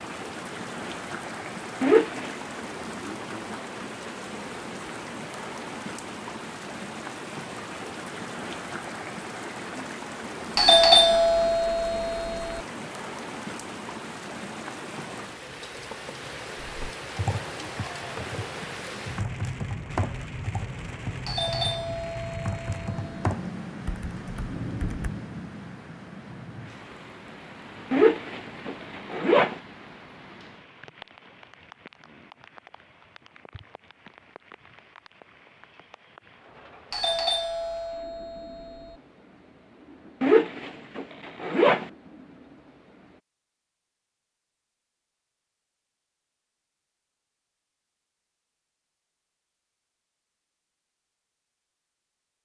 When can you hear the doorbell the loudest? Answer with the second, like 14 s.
11 s.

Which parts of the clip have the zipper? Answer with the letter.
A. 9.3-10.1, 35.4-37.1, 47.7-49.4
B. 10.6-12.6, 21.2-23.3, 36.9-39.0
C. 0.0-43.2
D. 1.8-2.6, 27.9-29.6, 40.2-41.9
D.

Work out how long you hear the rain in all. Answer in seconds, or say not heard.
43 s.